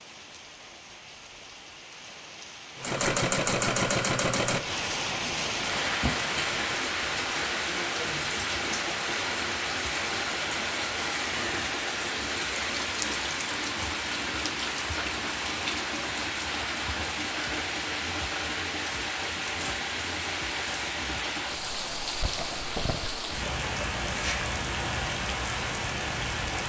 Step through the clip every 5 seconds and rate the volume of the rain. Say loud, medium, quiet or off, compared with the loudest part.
medium, loud, loud, loud, loud, loud.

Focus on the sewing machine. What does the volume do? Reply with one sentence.
The volume of the sewing machine goes down.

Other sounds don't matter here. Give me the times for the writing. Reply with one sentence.
The writing can't be heard in this clip.